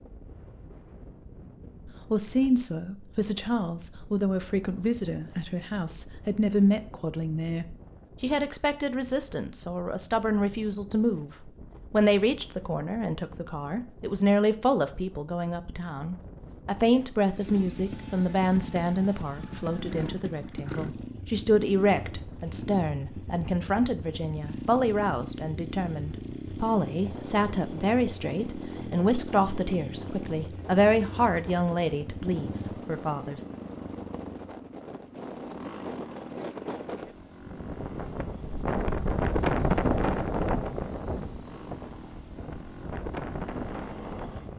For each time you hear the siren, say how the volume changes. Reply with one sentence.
The siren can't be heard in this clip.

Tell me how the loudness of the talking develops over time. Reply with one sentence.
The loudness of the talking stays about the same.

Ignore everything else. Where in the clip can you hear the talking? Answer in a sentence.
You can hear the talking from 2.1 to 33.5 s.